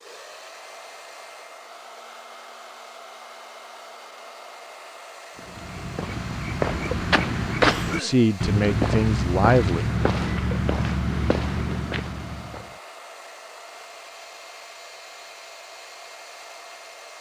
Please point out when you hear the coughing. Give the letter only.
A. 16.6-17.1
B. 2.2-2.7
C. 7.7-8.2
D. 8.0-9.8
C.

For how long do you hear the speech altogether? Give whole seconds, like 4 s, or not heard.
2 s.